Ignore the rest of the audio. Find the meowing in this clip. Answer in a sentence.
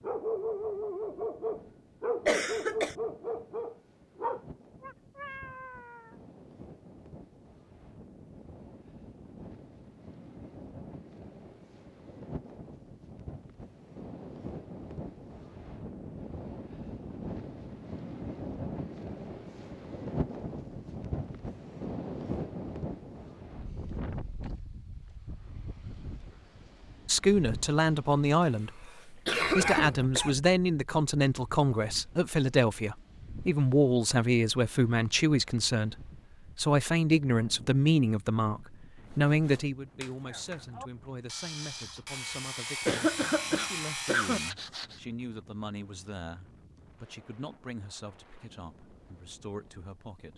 The meowing can be heard from 4.8 to 6.2 s.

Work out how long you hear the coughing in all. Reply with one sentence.
You can hear the coughing for 3 seconds altogether.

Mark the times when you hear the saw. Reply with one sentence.
The saw can be heard from 39.0 to 45.0 s.